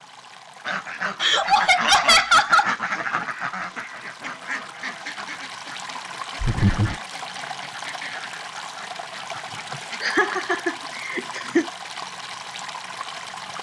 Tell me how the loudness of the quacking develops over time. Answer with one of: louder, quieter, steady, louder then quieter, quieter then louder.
quieter.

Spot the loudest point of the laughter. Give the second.
2 s.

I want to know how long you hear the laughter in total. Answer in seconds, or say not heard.
4 s.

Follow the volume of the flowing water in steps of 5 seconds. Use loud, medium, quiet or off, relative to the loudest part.
medium, loud, loud.